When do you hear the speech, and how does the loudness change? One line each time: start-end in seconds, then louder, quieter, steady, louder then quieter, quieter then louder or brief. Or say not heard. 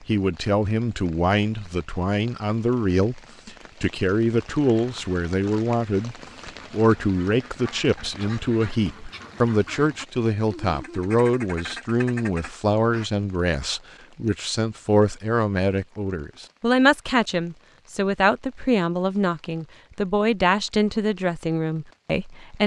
0.0-22.6 steady.